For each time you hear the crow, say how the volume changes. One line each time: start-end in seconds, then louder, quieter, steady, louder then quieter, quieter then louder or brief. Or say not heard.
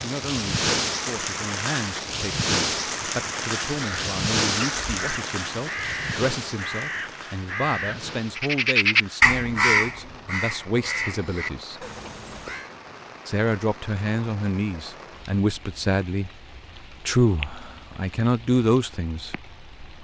3.7-12.7 louder then quieter.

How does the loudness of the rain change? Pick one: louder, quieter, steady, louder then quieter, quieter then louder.
quieter.